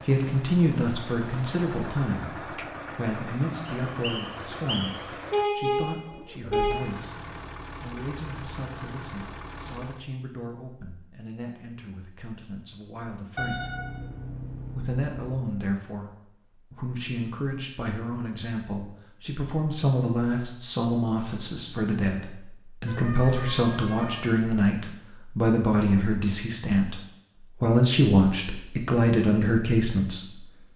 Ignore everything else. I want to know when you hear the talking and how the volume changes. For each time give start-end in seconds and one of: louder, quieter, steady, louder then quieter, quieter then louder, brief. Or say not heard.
0.0-13.7 quieter
14.7-30.4 louder.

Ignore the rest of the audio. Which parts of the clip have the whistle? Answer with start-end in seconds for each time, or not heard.
3.8-5.1.